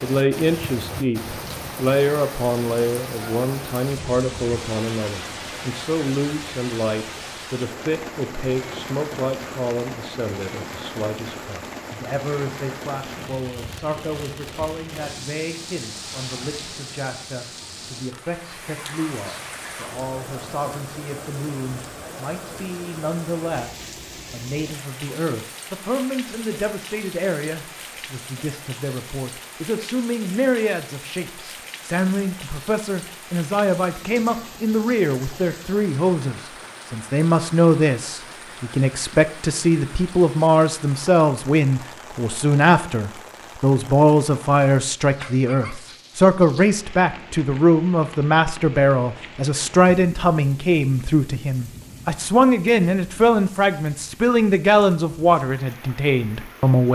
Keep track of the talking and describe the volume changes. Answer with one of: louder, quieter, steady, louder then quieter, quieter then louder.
quieter then louder.